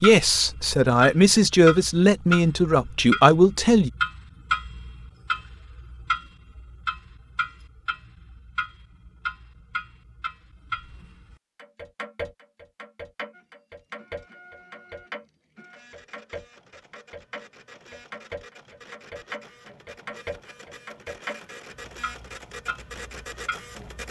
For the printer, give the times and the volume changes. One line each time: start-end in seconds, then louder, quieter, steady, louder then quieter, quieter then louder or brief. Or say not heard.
13.3-24.0 louder.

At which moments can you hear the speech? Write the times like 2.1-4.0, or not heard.
0.0-3.9.